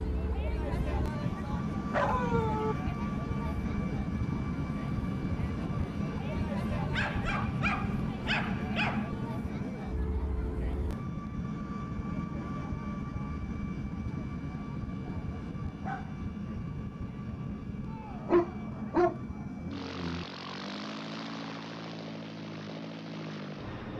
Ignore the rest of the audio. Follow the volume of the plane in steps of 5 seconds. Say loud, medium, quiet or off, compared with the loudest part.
loud, loud, loud, medium, medium.